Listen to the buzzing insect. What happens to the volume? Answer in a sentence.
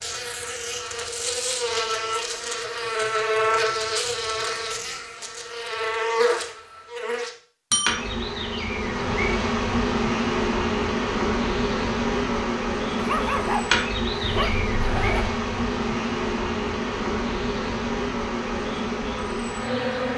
The volume of the buzzing insect stays about the same.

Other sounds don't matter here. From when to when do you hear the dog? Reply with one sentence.
The dog can be heard from 12.9 to 14.6 s.